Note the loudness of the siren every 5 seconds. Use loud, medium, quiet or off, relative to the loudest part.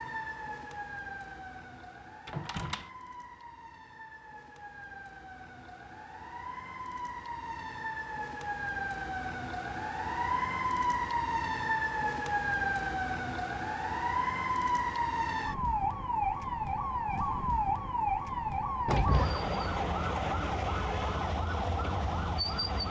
quiet, medium, loud, loud, loud.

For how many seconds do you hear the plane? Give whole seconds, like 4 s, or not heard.
not heard.